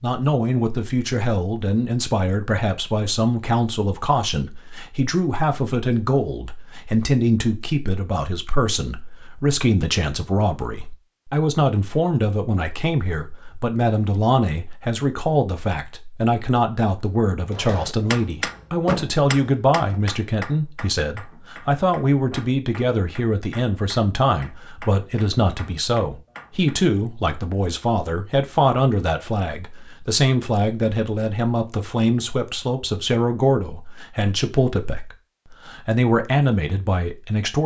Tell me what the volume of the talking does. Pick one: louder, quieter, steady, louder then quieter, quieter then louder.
steady.